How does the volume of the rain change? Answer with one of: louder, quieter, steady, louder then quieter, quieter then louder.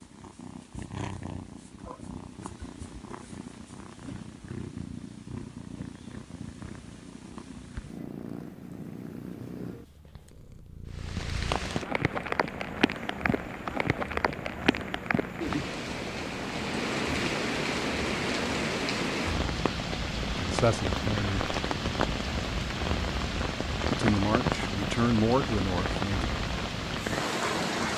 steady.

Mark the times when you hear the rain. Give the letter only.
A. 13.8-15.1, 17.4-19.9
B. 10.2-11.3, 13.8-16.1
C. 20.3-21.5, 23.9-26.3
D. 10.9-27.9
D.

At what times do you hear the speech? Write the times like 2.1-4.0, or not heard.
20.3-21.5, 23.9-26.3.